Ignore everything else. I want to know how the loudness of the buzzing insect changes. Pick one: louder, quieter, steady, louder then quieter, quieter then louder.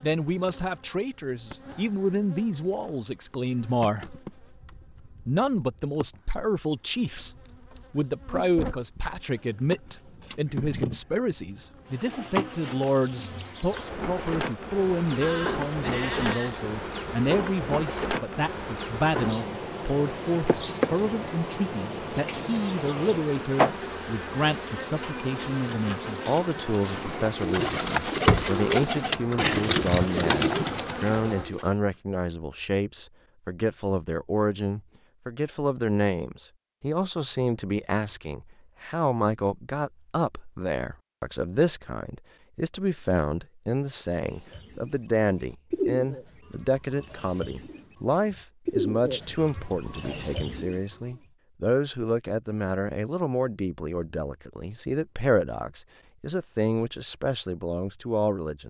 louder.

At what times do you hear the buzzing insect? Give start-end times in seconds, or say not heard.
0.0-31.4.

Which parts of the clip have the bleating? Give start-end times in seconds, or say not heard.
15.2-16.6.